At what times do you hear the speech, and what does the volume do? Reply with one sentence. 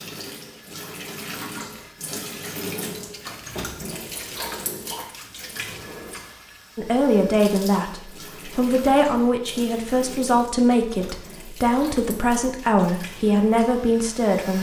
You can hear the speech from 6.8 to 14.5 s, at a steady volume.